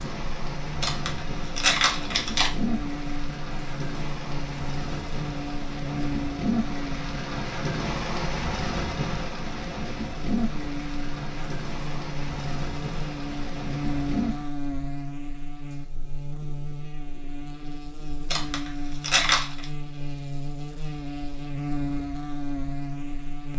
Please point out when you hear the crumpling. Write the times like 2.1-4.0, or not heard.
0.8-2.5, 18.3-19.6.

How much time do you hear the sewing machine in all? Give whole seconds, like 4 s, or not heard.
not heard.